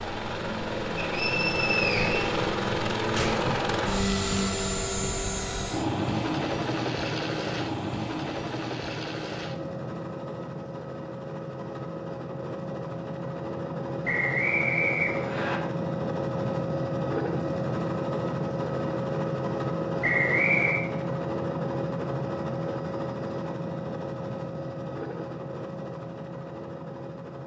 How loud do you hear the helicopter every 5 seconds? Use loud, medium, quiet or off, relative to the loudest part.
loud, loud, medium, loud, loud, medium.